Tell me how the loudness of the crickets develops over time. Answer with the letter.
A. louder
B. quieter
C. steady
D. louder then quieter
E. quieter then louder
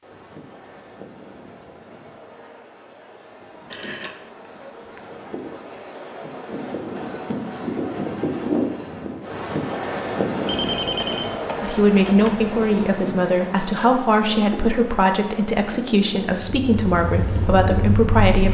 D.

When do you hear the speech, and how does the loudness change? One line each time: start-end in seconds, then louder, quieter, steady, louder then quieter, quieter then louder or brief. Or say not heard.
11.6-18.4 steady.